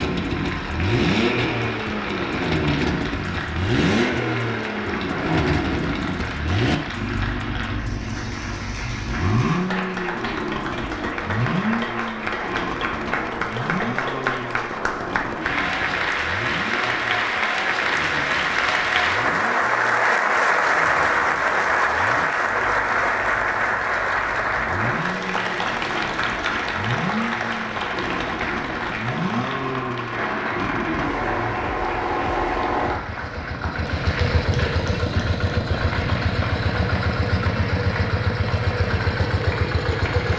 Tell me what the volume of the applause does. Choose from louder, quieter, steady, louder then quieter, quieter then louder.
louder then quieter.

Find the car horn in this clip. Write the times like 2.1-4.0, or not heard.
not heard.